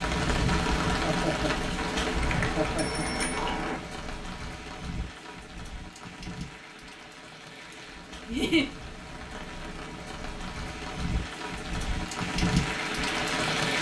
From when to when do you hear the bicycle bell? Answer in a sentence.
The bicycle bell can be heard from 1.8 to 3.8 s.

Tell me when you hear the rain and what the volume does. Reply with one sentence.
You can hear the rain from 0.0 to 13.7 s, getting quieter then louder.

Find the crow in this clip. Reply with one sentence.
You can't hear the crow here.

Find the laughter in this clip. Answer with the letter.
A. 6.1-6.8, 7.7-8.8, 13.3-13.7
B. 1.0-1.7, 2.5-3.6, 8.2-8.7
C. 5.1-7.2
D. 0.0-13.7
B.